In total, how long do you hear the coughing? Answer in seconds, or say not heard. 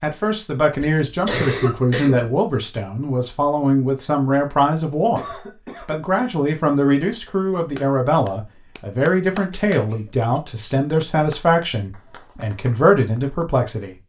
3 s.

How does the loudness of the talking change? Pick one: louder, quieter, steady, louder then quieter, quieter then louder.
steady.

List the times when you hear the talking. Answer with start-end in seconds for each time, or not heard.
0.0-14.0.